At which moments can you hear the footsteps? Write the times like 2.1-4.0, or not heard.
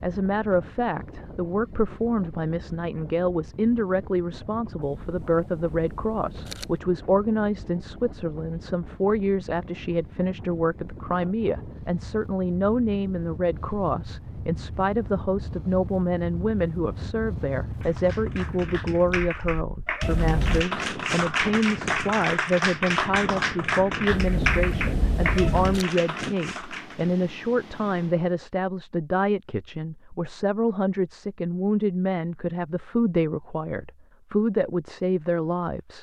not heard.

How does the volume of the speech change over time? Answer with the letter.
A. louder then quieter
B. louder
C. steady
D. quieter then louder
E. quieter
C.